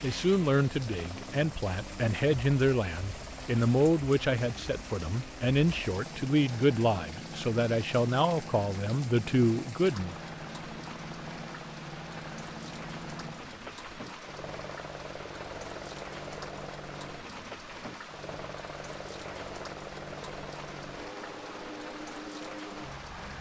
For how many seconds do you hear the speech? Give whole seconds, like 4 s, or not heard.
10 s.